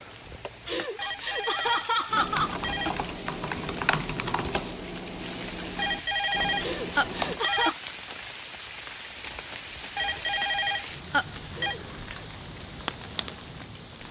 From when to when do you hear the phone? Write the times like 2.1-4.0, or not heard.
0.9-2.9, 5.8-7.7, 9.9-11.8.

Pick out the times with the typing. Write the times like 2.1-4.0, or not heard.
2.0-7.4.